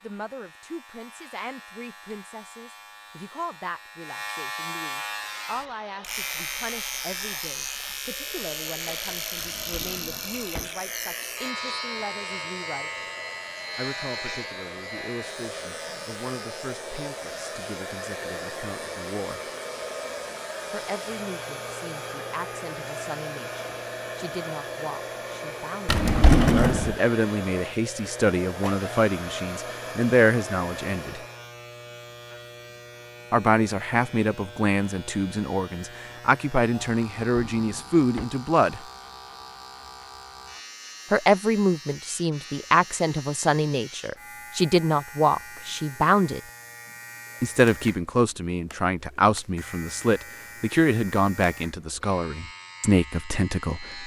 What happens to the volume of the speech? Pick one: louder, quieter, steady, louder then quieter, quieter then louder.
louder.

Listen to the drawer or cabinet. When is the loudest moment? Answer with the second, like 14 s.
26 s.